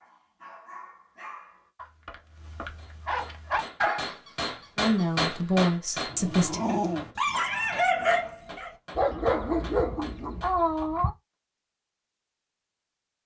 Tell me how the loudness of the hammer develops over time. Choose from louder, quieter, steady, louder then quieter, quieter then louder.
louder then quieter.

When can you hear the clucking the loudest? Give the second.
11 s.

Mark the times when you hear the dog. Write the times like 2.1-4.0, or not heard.
0.0-10.4.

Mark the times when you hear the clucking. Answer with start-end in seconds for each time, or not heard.
9.1-11.1.